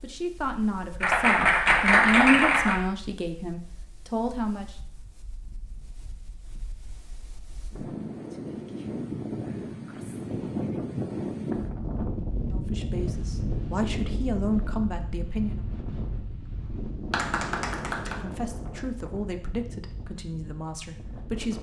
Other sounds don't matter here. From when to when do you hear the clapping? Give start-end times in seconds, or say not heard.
1.0-2.8, 17.1-18.1.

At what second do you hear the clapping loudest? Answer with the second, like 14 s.
2 s.